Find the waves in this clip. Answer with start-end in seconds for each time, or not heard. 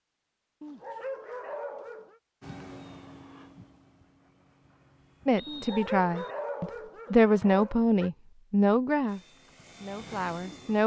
not heard.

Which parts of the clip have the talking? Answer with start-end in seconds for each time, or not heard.
5.2-10.8.